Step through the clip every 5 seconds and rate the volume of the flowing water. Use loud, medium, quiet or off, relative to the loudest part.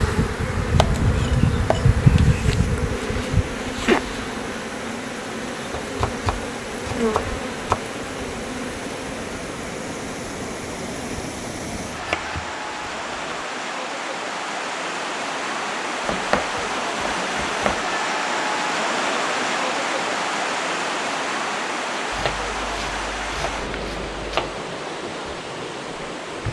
quiet, medium, medium, loud, loud, medium.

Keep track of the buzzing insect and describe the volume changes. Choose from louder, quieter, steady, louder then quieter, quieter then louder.
quieter.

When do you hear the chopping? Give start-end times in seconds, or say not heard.
0.8-2.2, 5.8-7.8, 11.9-13.4, 16.1-17.9, 22.1-24.6.